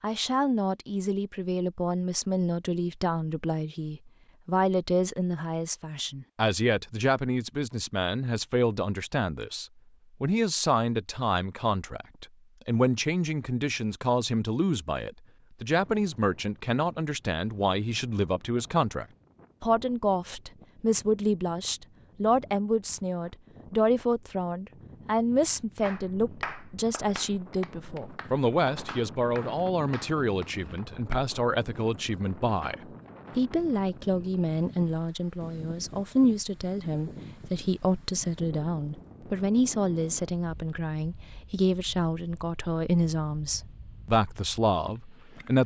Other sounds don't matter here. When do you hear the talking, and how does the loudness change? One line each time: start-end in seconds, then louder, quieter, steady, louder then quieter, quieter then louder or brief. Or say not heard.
0.0-45.6 steady.